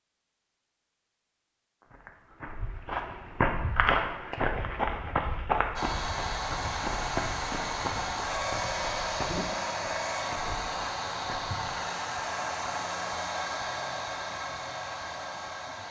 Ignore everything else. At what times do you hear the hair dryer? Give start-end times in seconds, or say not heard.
5.8-15.8.